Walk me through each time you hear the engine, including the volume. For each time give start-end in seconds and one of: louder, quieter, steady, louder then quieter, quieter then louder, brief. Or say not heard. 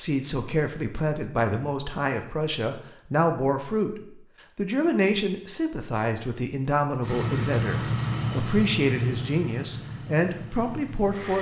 7.0-11.3 quieter.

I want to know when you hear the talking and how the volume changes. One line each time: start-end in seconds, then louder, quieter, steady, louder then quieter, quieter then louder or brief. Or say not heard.
0.0-11.3 steady.